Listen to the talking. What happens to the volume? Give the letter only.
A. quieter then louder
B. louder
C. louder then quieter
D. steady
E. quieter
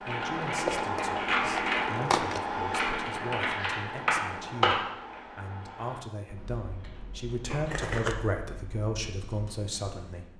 B.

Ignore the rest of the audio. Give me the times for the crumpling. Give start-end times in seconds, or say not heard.
0.5-2.4, 7.5-8.2.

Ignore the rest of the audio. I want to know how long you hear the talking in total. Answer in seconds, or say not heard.
10 s.